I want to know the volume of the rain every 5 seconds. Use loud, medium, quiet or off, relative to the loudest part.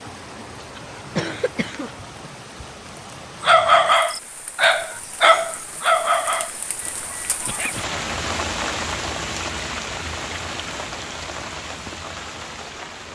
medium, loud, loud.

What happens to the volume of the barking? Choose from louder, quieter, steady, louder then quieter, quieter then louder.
quieter.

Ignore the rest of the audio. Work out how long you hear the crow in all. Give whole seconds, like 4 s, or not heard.
not heard.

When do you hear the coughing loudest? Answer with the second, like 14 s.
1 s.